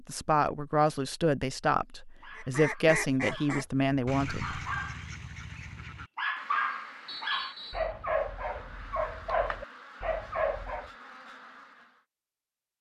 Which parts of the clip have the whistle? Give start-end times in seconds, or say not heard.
7.0-7.9.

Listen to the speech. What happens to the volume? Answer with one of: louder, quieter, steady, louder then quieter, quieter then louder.
steady.